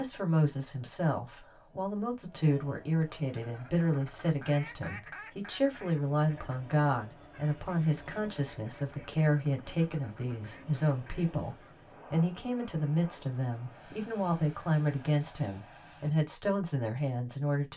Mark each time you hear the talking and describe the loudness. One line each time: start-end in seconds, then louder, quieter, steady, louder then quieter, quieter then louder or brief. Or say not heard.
0.0-17.7 steady.